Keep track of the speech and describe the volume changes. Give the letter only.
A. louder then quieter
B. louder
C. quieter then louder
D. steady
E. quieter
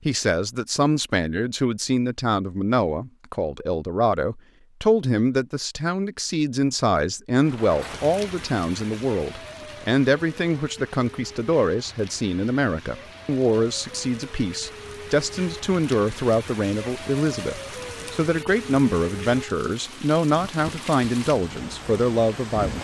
D.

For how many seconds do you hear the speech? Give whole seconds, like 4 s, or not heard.
23 s.